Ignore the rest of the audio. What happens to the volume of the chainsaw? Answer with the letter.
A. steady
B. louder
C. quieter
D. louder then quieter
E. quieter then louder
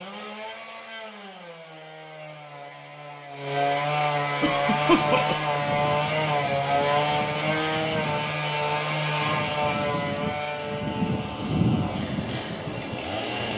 D.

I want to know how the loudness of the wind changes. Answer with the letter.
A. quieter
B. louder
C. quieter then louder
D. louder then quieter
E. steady
B.